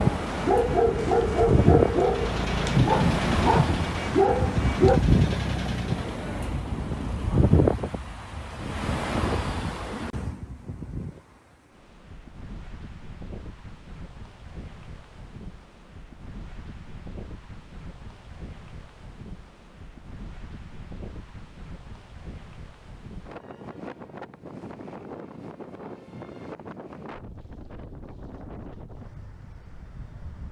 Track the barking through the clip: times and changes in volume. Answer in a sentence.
You can hear the barking from 0.0 to 5.0 s, at a steady volume.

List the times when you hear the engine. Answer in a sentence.
The engine can be heard from 1.9 to 6.2 s.